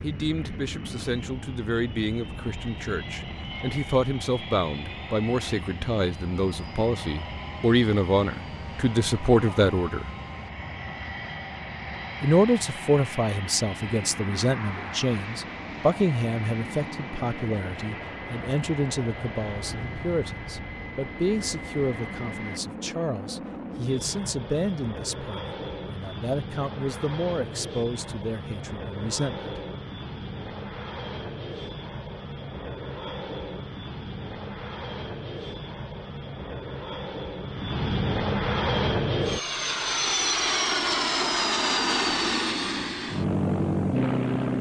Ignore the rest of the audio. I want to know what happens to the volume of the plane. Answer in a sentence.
The loudness of the plane goes up.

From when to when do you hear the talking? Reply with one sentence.
You can hear the talking from 0.0 to 10.1 s and from 12.2 to 29.6 s.